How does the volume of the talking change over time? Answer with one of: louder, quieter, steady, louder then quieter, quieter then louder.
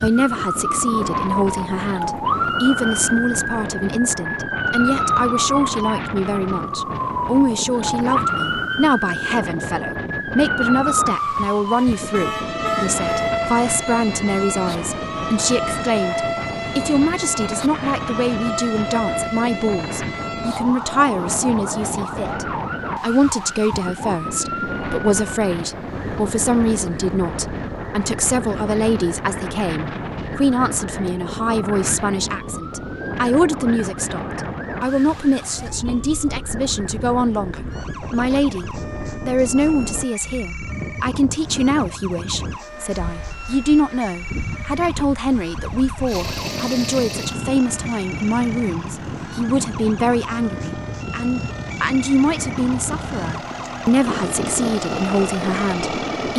steady.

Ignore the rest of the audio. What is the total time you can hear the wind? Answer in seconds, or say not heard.
56 s.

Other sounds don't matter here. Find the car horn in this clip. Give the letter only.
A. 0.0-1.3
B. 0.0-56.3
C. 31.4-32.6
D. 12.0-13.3
D.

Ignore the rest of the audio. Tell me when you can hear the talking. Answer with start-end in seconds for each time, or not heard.
0.0-56.3.